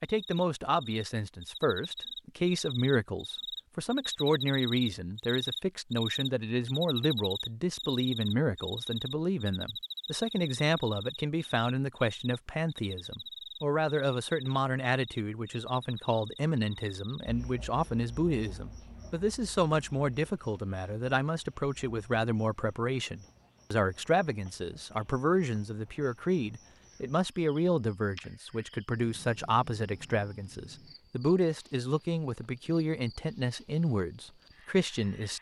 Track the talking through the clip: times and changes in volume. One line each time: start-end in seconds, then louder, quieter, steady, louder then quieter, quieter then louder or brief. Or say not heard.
0.0-35.3 steady.